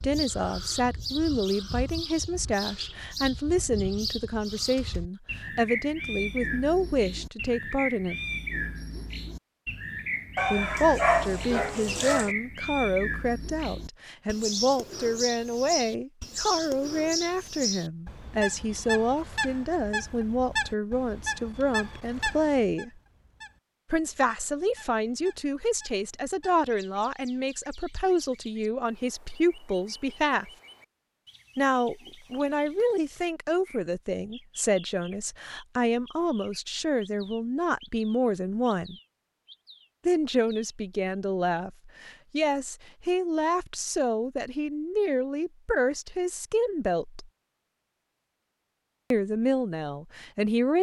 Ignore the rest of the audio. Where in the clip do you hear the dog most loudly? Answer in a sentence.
The volume of the dog peaks at 11 seconds.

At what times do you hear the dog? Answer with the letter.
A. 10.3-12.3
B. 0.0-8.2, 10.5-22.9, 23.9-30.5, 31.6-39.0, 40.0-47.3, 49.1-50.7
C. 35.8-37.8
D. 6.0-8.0
A.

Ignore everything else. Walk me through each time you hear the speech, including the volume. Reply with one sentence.
The speech can be heard from 0.0 to 8.2 s, at a steady volume; from 10.5 to 22.9 s, at a steady volume; from 23.9 to 30.5 s, at a steady volume; from 31.6 to 39.0 s, at a steady volume; from 40.0 to 47.3 s, at a steady volume; and briefly from 49.1 to 50.7 s.